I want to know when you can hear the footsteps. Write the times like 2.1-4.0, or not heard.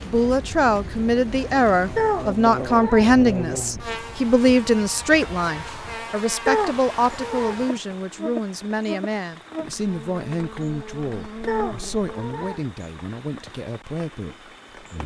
not heard.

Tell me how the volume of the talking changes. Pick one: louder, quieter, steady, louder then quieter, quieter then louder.
quieter.